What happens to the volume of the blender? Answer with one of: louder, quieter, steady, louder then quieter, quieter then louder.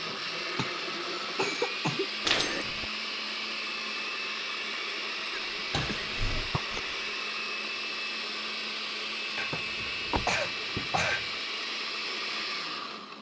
steady.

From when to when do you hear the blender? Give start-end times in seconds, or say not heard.
0.0-13.1.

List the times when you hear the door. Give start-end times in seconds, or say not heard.
2.2-2.9, 5.7-6.5, 9.5-11.2.